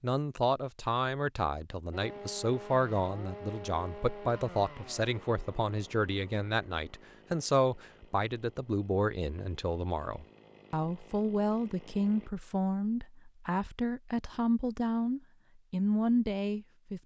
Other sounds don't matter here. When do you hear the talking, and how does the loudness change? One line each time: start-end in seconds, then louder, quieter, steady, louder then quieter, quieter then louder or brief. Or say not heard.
0.0-17.0 steady.